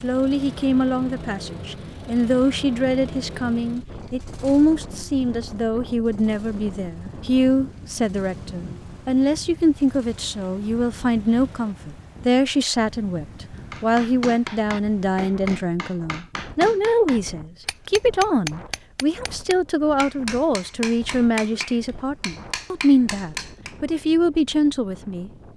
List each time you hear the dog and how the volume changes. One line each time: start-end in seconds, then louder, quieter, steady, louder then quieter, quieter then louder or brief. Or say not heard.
not heard.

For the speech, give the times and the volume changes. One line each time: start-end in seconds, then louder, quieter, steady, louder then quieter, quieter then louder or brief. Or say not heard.
0.0-25.5 steady.